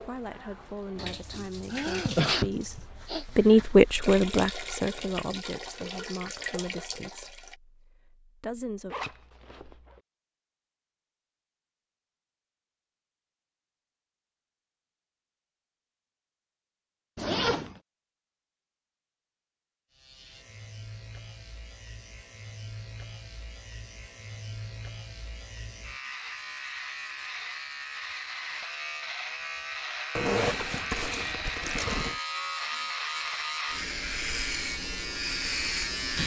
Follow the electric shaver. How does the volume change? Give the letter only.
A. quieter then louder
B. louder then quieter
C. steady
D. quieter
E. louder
E.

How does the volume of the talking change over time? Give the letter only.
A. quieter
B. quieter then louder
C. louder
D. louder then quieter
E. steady
D.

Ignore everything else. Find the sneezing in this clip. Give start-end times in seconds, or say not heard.
1.7-3.2.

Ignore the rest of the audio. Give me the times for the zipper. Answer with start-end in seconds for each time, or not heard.
8.9-10.0, 17.1-17.8, 30.1-32.2.